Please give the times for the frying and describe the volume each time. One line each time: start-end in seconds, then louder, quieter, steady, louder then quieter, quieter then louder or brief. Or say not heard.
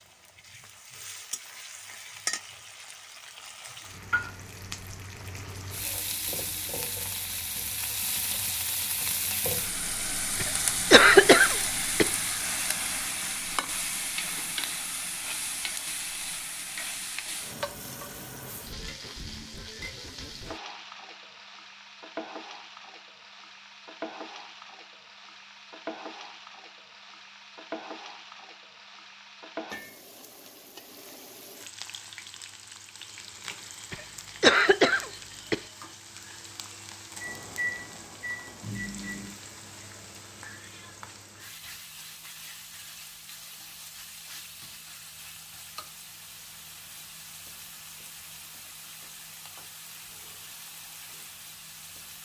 0.0-52.2 quieter.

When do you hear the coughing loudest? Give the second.
11 s.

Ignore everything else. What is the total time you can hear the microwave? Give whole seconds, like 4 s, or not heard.
2 s.